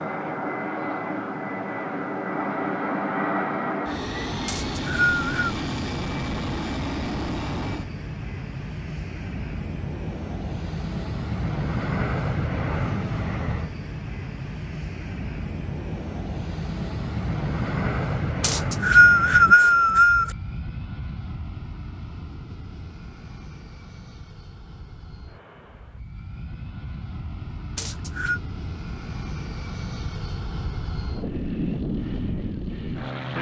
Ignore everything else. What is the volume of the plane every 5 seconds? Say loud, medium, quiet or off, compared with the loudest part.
loud, loud, loud, loud, quiet, medium, loud.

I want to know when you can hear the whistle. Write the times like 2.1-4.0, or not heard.
4.5-5.5, 18.4-20.3, 27.8-28.4.